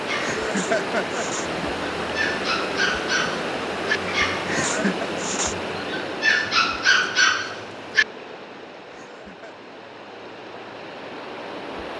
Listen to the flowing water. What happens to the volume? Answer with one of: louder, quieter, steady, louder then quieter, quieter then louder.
quieter.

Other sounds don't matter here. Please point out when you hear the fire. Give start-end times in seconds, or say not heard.
not heard.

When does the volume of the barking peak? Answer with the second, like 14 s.
7 s.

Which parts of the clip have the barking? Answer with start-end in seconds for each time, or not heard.
0.1-8.1.